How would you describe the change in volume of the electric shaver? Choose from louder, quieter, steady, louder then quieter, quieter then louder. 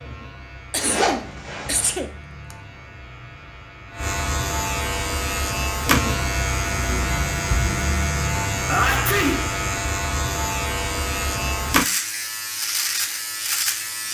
louder.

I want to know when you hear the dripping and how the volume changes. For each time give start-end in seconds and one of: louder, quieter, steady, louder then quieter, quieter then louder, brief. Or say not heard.
not heard.